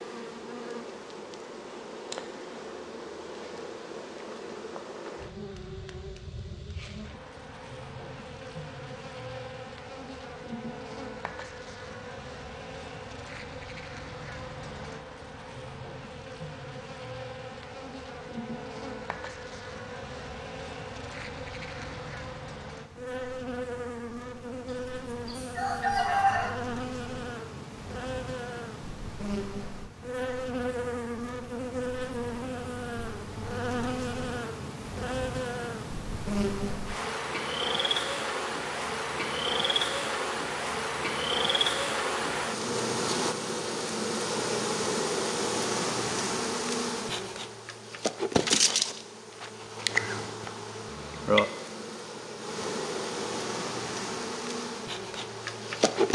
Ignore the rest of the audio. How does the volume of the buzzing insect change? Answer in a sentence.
The volume of the buzzing insect goes up.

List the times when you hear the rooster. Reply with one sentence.
The rooster can be heard from 24.6 to 26.6 s.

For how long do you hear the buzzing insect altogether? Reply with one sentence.
The buzzing insect can be heard for 56 seconds in total.